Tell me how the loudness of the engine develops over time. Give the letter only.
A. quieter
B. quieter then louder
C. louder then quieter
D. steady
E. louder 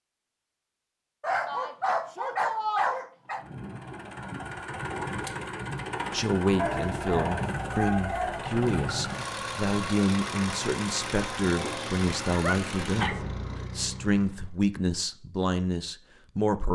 D.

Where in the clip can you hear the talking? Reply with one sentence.
You can hear the talking from 6.1 to 16.7 s.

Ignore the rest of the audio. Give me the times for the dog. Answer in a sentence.
You can hear the dog from 1.2 to 3.4 s, from 6.5 to 8.4 s and from 11.6 to 13.2 s.